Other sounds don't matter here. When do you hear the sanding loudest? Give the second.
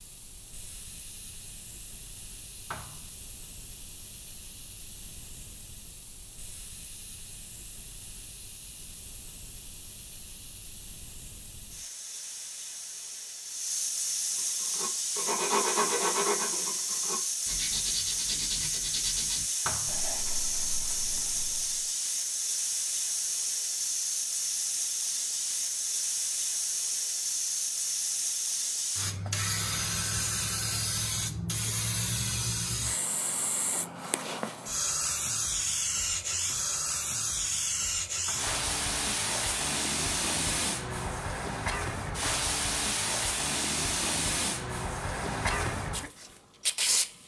16 s.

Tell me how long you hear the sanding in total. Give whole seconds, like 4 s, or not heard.
7 s.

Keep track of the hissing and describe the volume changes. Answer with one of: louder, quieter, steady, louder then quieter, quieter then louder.
louder.